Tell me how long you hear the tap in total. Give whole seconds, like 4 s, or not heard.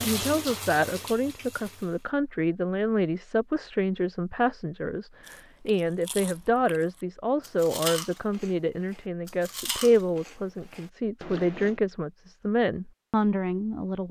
2 s.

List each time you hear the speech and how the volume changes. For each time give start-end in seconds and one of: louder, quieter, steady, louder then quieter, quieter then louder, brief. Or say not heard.
0.0-14.0 steady.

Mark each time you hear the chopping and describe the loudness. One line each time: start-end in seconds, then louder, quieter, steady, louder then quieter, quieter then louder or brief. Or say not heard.
not heard.